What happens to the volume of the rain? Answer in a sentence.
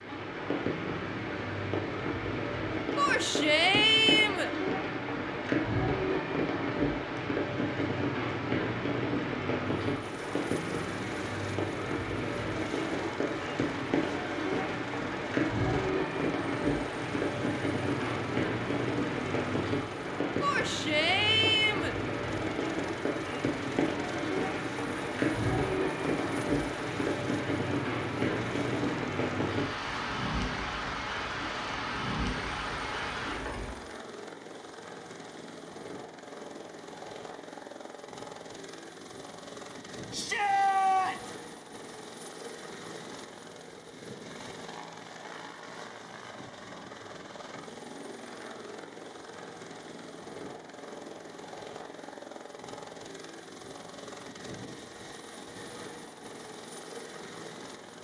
The volume of the rain stays about the same.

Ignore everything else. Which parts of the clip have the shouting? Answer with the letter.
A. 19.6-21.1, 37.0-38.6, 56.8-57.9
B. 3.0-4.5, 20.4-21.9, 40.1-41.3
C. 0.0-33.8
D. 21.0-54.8
B.